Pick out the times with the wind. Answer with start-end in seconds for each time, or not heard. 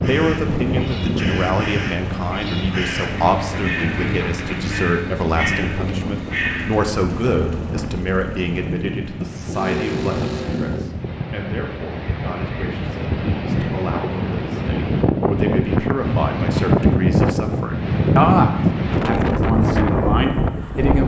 0.0-21.0.